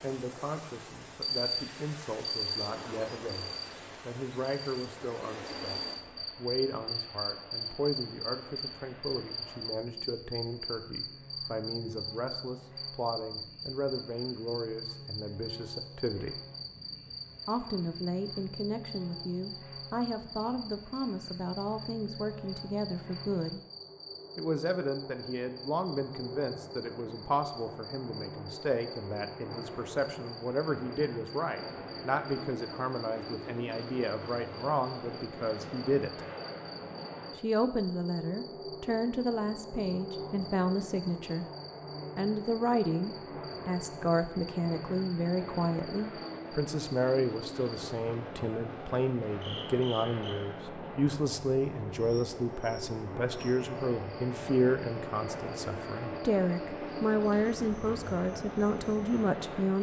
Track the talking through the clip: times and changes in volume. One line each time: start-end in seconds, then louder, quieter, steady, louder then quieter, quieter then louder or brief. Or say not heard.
0.0-16.4 steady
17.4-23.6 steady
24.4-36.2 steady
37.4-41.5 steady
42.1-59.7 steady.